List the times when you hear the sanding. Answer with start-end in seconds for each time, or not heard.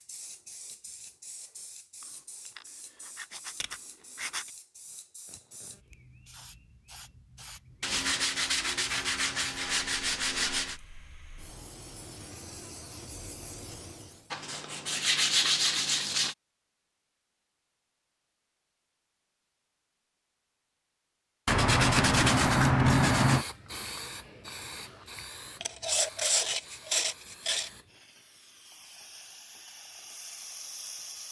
2.0-4.5, 7.8-10.8, 14.3-16.4, 21.4-23.4, 25.6-27.7.